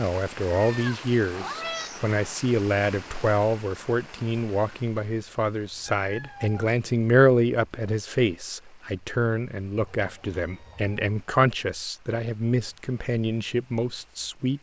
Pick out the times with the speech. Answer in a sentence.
The speech can be heard from 0.0 to 14.5 s.